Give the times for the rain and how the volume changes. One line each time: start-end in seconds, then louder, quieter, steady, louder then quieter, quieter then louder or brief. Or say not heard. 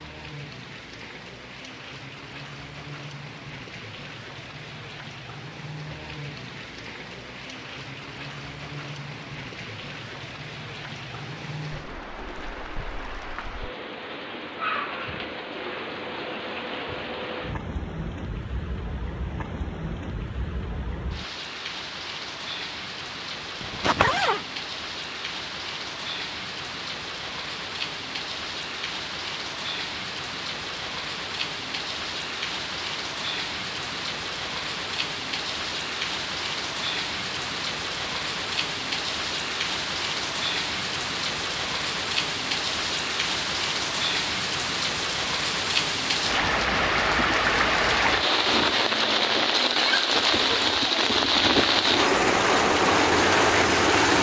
0.0-54.1 louder.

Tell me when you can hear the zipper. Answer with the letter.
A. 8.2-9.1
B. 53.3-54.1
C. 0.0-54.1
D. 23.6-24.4
D.